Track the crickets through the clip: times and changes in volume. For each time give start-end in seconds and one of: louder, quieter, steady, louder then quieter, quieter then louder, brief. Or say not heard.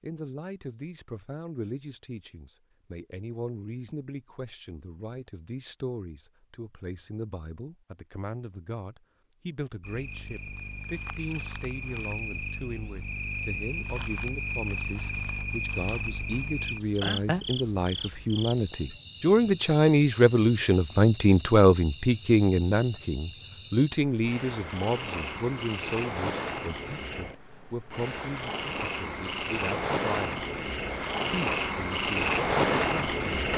9.8-33.5 louder.